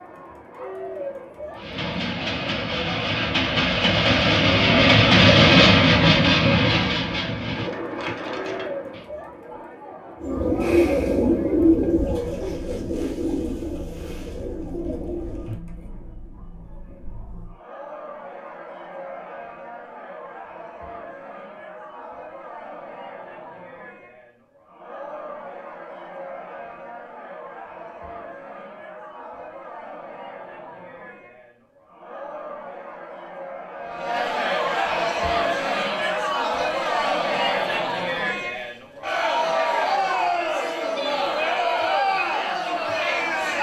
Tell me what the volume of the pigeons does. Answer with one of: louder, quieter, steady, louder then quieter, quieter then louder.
quieter.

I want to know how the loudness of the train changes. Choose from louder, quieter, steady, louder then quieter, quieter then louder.
louder then quieter.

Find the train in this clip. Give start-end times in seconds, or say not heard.
1.5-9.1.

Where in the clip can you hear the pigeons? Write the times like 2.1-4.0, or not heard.
10.2-15.6.